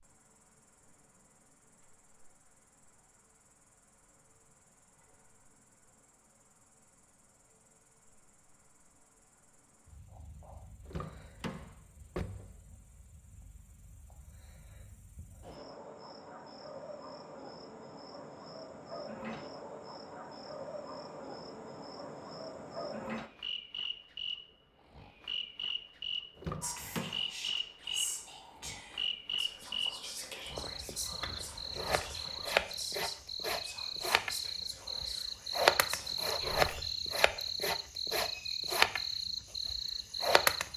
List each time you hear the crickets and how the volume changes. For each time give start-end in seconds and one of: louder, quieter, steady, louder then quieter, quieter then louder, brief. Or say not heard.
0.0-40.7 louder.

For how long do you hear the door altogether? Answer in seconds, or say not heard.
3 s.